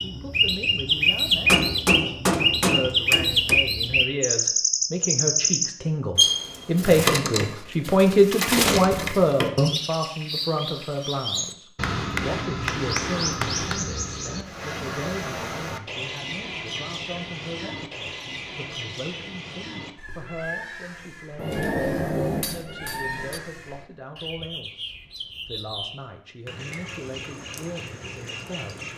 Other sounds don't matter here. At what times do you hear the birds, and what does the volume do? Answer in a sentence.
The birds can be heard from 0.0 to 28.9 s, getting quieter.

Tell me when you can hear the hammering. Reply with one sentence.
The hammering can be heard from 1.4 to 3.6 s, from 11.8 to 13.8 s and from 21.4 to 23.4 s.